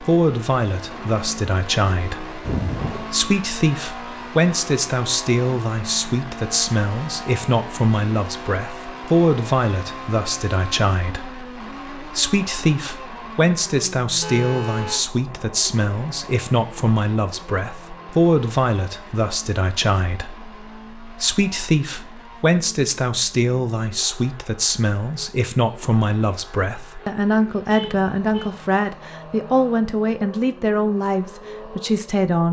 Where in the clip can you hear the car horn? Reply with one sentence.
You can hear the car horn from 2.5 to 3.0 s, from 14.2 to 15.0 s and from 27.7 to 28.6 s.